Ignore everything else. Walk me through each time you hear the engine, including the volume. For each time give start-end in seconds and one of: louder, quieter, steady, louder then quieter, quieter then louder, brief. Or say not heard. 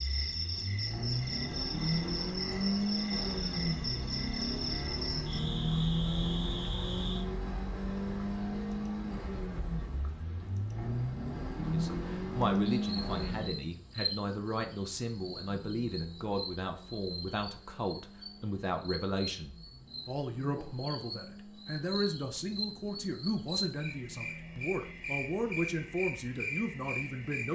0.0-27.4 quieter.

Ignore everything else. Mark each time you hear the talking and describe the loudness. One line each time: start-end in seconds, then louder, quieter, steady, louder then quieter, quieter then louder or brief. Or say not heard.
11.7-27.4 steady.